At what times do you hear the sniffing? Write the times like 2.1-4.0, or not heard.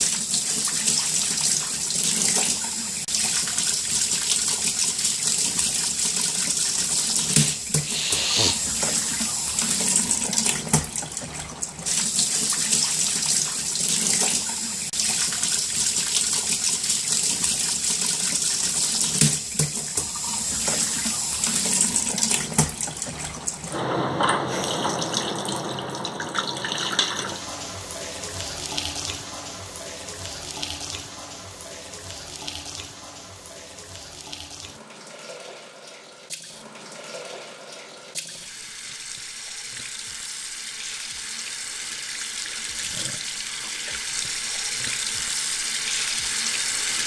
7.3-8.7.